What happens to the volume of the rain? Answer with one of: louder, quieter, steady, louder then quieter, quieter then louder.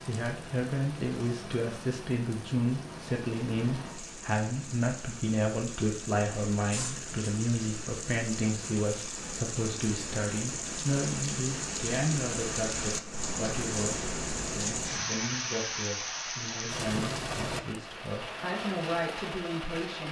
louder.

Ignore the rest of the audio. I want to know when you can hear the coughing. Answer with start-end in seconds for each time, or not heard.
6.7-7.3.